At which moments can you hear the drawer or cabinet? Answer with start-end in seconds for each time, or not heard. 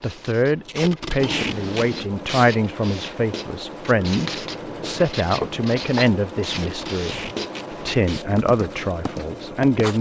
1.1-2.1, 5.4-6.2.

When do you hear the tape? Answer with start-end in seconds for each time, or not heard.
0.7-2.5, 6.4-8.2.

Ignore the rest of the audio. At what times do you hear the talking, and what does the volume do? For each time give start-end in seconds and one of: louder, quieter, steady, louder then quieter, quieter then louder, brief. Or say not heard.
0.0-9.9 steady.